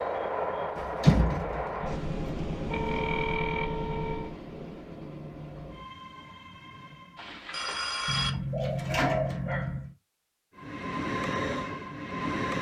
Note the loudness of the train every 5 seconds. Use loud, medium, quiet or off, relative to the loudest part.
loud, quiet, loud.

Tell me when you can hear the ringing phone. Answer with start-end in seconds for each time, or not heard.
1.8-4.3, 7.2-8.3.